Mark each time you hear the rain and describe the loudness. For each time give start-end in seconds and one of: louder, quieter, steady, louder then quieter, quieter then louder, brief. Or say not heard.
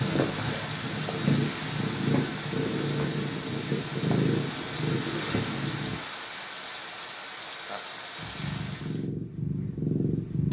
0.0-9.1 steady.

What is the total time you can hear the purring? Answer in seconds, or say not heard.
8 s.